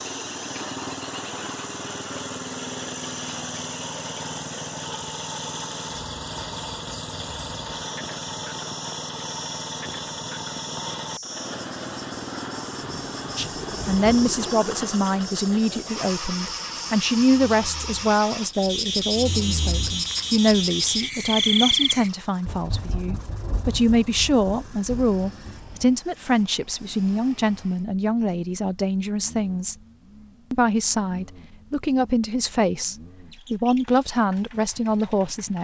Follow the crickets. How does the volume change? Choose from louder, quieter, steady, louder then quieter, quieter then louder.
louder.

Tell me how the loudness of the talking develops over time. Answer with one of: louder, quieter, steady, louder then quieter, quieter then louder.
steady.